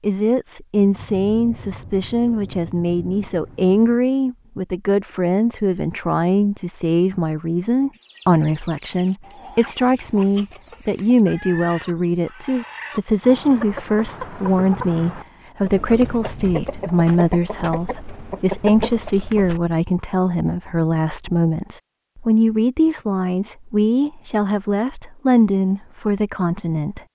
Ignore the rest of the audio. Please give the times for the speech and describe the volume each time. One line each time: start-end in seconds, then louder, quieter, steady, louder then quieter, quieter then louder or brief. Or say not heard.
0.0-27.0 steady.